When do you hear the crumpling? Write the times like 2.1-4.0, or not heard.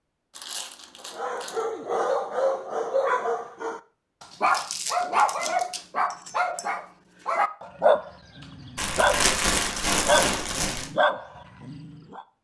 0.3-1.6, 4.5-5.8, 8.8-10.9.